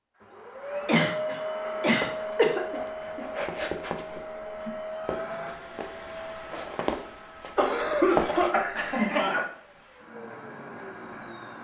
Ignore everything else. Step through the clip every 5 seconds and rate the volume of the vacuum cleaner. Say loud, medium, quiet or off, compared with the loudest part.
loud, medium, medium.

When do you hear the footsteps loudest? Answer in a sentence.
The volume of the footsteps peaks at 8 seconds.